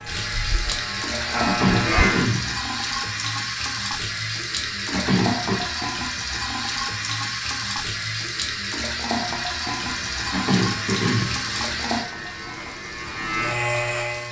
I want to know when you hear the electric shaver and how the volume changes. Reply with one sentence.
The electric shaver can be heard briefly from 0.0 to 2.3 s; and from 9.8 to 14.2 s, getting louder.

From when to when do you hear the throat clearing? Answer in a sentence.
The throat clearing can be heard from 1.4 to 2.6 s, from 4.9 to 5.7 s and from 10.3 to 11.4 s.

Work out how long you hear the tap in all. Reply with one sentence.
The tap can be heard for 14 seconds in total.